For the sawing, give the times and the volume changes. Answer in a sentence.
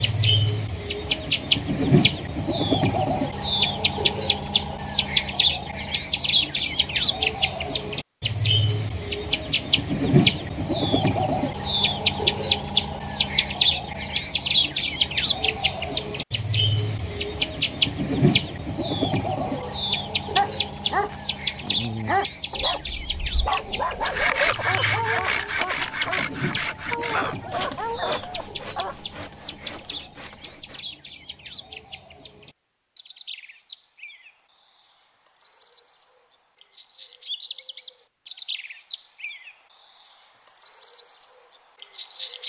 You can hear the sawing from 24.0 to 30.9 s, getting quieter.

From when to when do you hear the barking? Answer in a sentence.
The barking can be heard from 19.4 to 28.9 s.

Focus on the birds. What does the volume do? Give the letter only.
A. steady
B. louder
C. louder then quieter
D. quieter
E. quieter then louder
D.